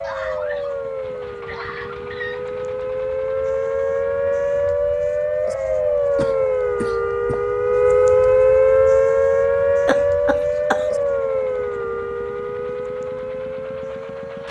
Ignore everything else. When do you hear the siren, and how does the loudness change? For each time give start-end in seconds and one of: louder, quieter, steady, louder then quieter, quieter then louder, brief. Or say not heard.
0.0-14.4 louder then quieter.